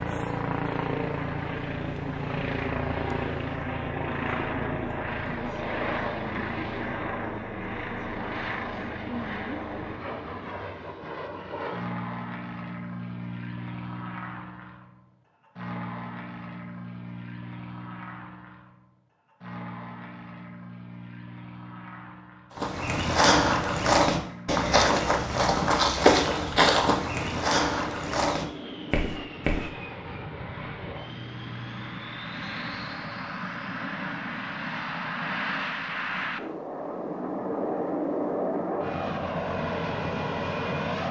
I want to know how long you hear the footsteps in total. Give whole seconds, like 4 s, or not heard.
7 s.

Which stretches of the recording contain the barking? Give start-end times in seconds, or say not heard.
not heard.